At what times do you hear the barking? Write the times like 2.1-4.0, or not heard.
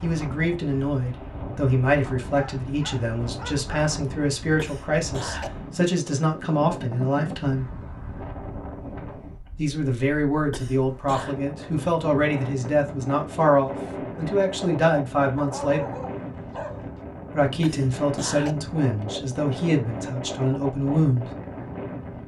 2.2-3.7, 15.3-17.0.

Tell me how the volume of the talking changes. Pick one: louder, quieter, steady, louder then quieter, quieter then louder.
steady.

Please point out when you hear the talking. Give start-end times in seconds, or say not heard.
0.0-7.7, 9.6-15.9, 17.3-21.3.